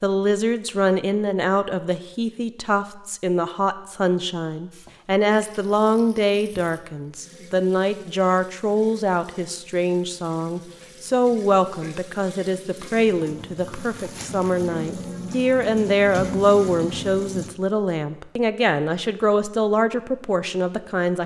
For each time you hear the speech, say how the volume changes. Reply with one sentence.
You can hear the speech from 0.0 to 21.2 s, at a steady volume.